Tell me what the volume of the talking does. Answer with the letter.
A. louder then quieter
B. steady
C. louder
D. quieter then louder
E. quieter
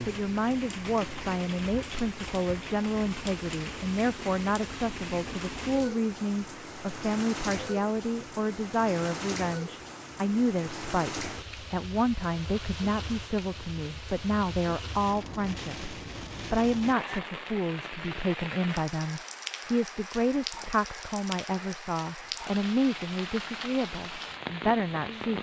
B.